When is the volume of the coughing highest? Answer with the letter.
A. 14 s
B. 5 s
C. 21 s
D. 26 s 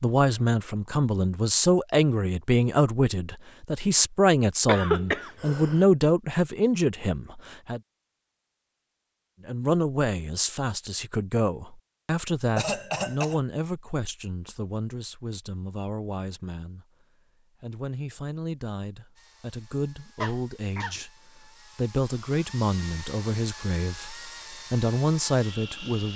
B.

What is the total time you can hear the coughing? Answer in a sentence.
You can hear the coughing for 3 seconds altogether.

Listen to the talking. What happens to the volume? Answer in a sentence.
The loudness of the talking goes down, then up.